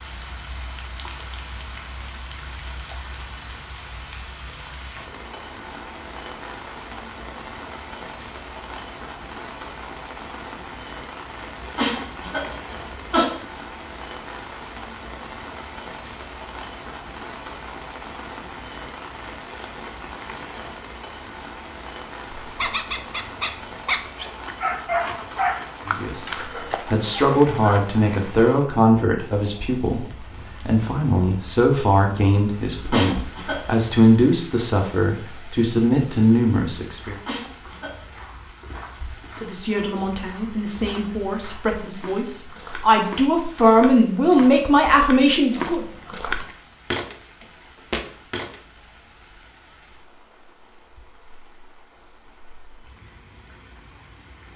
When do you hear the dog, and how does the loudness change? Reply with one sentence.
The dog can be heard from 22.4 to 27.8 s, getting louder then quieter.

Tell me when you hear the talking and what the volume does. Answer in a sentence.
You can hear the talking from 25.9 to 37.1 s, at a steady volume; and from 39.4 to 45.9 s, getting louder.